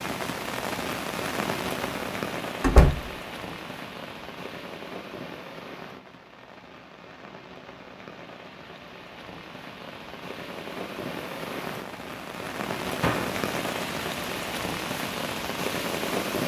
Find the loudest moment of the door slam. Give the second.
3 s.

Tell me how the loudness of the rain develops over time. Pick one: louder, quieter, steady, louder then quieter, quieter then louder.
quieter then louder.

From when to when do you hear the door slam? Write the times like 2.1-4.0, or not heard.
2.6-3.1, 13.0-13.4.